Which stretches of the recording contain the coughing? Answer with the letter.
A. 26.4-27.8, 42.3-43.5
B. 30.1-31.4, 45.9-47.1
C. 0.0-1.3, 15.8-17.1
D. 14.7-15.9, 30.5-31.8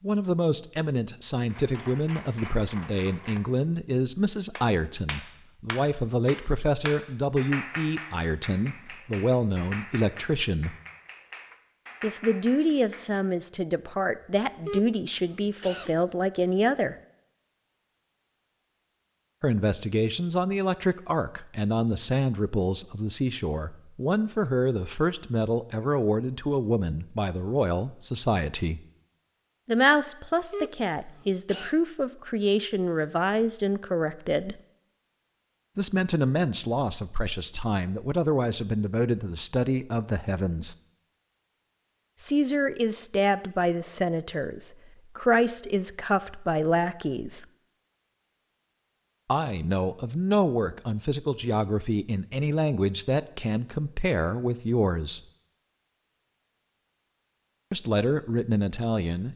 D.